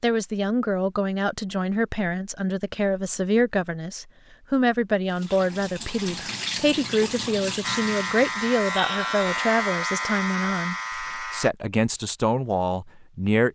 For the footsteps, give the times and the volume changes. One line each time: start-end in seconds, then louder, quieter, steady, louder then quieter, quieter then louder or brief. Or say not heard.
not heard.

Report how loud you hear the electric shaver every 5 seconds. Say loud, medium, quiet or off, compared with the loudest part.
off, loud, loud.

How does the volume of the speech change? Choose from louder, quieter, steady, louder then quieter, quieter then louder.
steady.